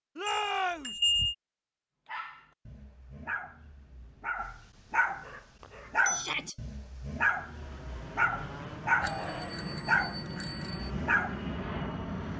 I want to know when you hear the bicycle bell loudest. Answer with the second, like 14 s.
1 s.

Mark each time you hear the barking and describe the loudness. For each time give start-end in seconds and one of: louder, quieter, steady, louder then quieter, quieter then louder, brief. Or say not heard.
2.0-11.6 louder.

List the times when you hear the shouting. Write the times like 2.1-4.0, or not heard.
0.1-0.9, 6.1-6.5, 8.9-9.6.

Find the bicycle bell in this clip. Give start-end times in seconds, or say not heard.
0.2-1.4, 5.6-6.3, 9.0-10.9.